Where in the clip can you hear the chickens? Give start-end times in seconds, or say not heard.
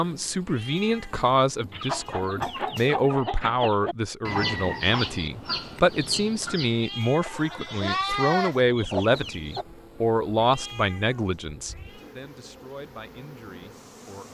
1.7-9.7.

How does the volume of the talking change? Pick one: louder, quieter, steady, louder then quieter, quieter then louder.
quieter.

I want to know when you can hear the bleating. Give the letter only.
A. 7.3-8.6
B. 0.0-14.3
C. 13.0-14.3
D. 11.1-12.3
A.